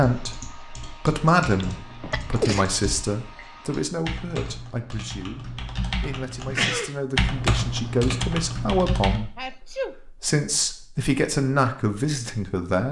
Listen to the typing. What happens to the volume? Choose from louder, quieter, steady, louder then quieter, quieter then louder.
louder.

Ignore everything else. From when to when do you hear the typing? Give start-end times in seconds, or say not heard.
0.0-9.2.